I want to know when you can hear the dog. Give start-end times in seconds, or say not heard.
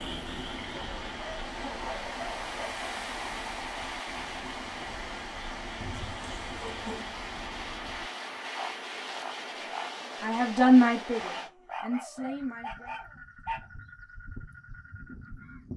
0.8-2.7, 5.8-7.0, 11.2-13.7.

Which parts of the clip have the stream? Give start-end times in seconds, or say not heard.
0.0-11.5.